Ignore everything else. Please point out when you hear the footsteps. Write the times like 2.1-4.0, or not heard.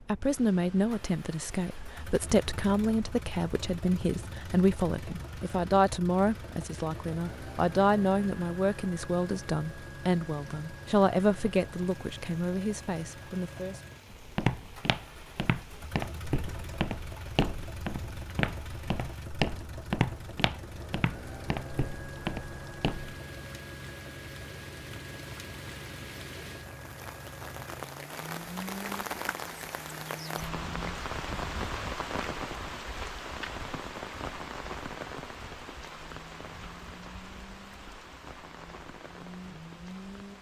14.1-23.1.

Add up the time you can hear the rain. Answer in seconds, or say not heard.
40 s.